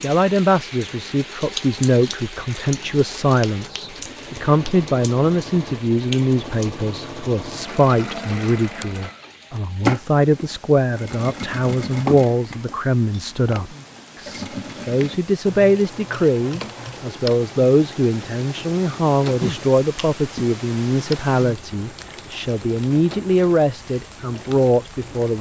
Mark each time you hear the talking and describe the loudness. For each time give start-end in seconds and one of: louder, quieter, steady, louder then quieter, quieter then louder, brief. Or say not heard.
0.0-25.3 steady.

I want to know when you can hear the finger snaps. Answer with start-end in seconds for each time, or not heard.
3.4-4.8, 19.4-20.4.